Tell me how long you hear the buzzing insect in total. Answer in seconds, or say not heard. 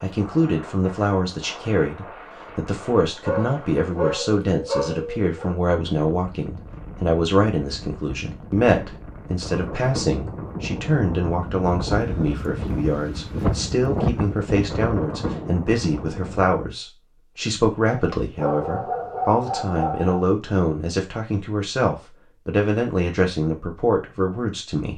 not heard.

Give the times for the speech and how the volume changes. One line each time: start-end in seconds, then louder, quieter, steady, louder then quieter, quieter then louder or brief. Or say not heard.
0.0-24.9 steady.